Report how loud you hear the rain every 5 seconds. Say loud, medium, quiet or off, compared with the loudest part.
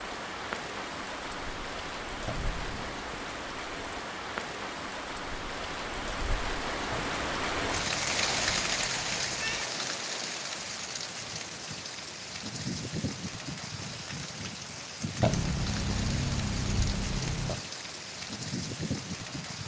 medium, loud, medium, medium.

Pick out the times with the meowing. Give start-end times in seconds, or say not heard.
2.2-3.0, 6.9-9.7, 15.2-17.6.